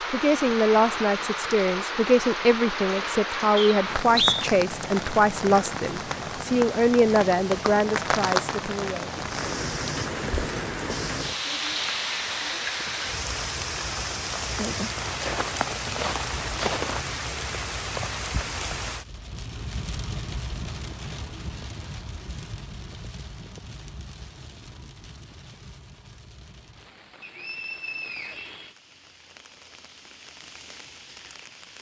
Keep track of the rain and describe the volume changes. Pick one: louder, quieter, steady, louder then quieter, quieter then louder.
quieter.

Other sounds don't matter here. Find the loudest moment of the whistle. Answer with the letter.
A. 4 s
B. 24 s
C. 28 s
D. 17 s
A.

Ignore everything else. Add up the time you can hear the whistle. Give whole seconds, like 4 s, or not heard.
2 s.